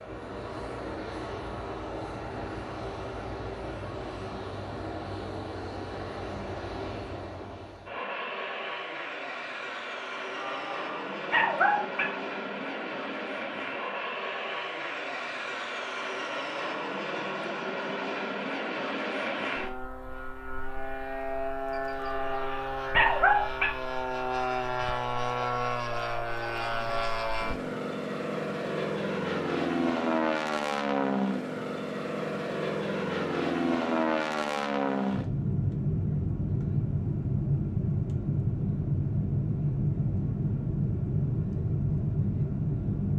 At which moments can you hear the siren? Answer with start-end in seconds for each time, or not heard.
not heard.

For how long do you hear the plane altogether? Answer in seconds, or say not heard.
43 s.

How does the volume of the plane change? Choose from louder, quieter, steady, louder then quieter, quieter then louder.
louder.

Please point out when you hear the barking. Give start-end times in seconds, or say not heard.
10.3-12.1, 22.0-23.8.